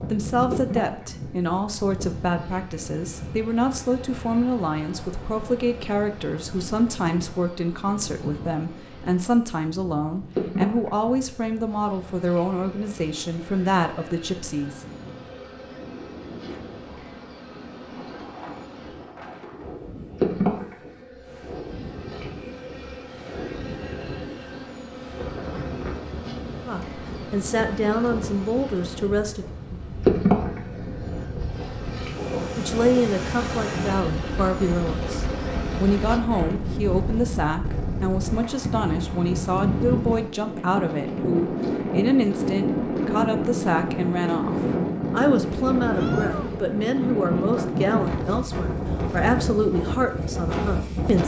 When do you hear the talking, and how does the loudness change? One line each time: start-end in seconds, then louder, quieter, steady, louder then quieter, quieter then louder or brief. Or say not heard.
0.1-14.8 steady
26.6-29.4 brief
32.5-51.2 steady.